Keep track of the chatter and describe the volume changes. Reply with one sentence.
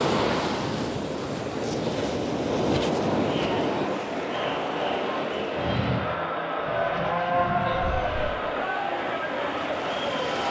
The volume of the chatter stays about the same.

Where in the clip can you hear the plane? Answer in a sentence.
You can hear the plane from 5.5 to 8.3 s.